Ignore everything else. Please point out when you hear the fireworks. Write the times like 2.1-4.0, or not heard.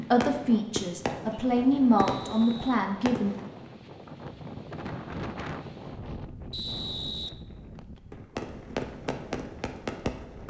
0.0-3.8, 8.1-10.4.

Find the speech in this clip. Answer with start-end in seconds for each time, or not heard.
0.0-3.3.